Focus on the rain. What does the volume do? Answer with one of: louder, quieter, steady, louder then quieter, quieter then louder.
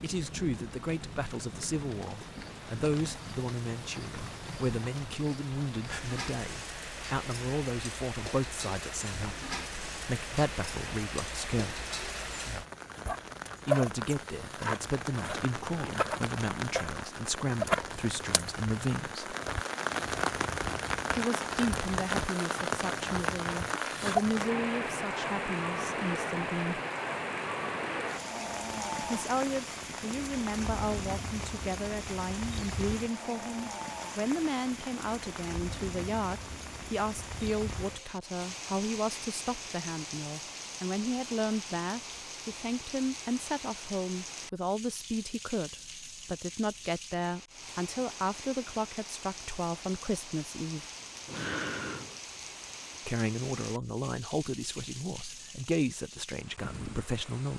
louder then quieter.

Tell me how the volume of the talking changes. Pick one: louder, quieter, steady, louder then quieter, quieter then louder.
steady.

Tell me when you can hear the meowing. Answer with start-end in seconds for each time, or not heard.
51.2-52.2.